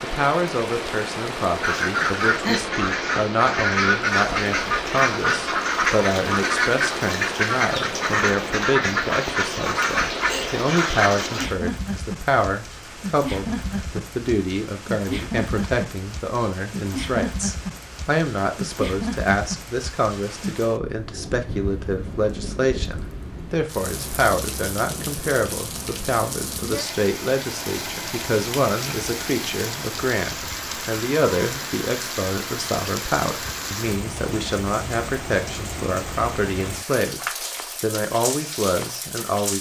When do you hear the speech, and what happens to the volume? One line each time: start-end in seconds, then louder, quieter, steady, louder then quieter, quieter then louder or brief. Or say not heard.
0.0-39.5 steady.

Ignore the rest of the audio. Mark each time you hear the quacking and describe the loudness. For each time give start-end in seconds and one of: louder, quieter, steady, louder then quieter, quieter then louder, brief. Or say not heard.
1.6-11.5 steady.